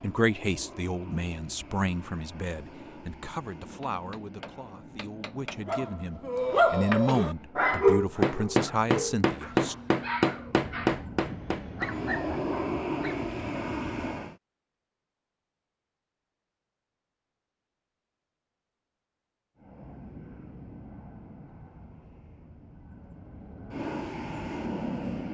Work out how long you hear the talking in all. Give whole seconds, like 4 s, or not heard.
10 s.